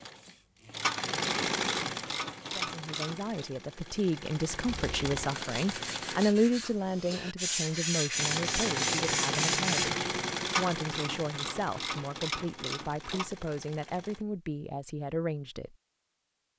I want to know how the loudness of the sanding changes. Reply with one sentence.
The loudness of the sanding goes up.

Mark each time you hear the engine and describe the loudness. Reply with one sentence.
The engine can be heard from 0.0 to 6.3 s, getting quieter then louder; and from 8.1 to 14.2 s, getting quieter.